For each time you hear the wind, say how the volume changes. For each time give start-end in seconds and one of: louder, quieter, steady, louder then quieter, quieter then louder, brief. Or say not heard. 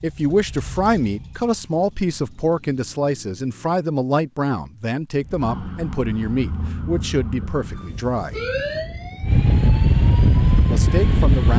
5.2-11.5 louder.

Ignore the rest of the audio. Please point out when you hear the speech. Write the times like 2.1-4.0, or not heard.
0.0-8.4, 10.7-11.5.